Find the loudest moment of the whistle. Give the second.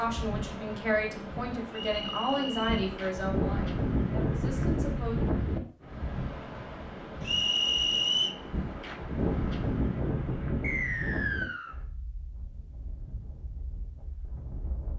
8 s.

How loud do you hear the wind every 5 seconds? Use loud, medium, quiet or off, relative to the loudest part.
loud, loud, medium.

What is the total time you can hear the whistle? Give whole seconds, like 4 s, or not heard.
3 s.